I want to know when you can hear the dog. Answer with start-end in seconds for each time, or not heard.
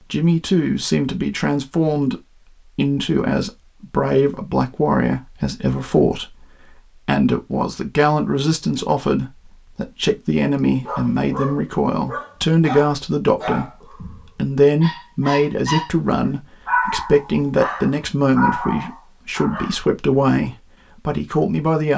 10.8-19.9.